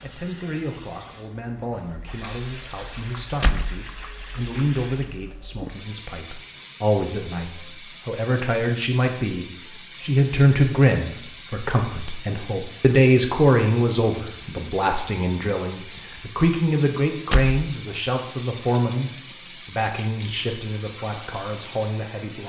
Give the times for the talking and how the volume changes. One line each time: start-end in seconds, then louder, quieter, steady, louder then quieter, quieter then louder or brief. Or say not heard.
0.0-22.4 louder then quieter.